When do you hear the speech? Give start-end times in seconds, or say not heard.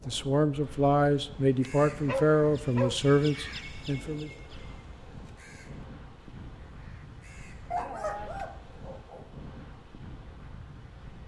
0.1-4.3.